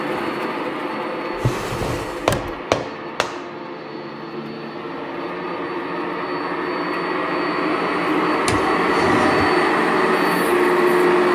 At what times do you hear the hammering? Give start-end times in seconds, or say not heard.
1.8-3.5.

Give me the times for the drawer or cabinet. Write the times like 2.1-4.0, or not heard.
1.4-2.6, 8.4-9.5.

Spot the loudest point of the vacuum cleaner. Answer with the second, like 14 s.
11 s.